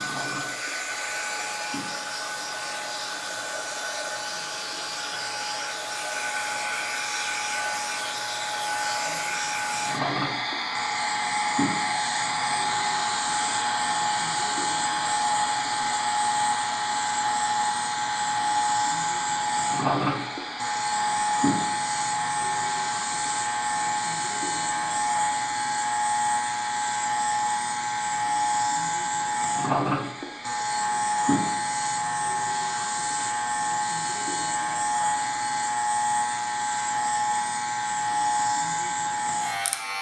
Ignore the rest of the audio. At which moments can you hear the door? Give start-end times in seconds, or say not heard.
not heard.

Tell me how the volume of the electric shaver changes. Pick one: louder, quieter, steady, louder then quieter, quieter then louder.
louder.